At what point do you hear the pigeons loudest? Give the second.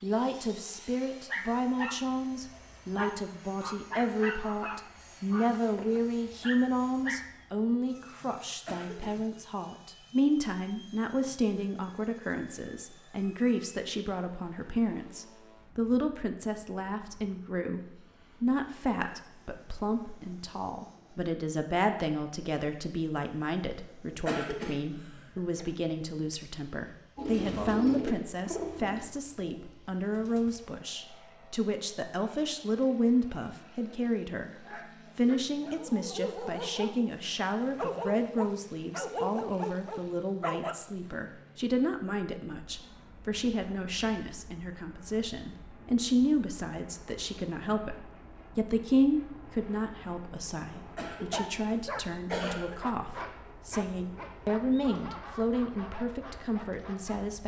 28 s.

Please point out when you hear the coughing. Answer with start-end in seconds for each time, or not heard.
8.7-9.4, 24.2-25.6, 51.0-52.8.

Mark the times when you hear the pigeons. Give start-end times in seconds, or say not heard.
27.1-30.6.